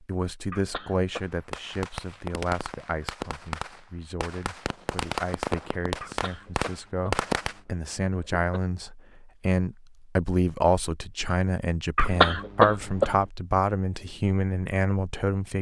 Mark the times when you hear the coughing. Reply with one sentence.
You can hear the coughing from 0.5 to 1.3 s, from 6.0 to 8.5 s and from 11.9 to 13.2 s.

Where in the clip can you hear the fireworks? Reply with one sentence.
You can hear the fireworks from 1.1 to 7.5 s.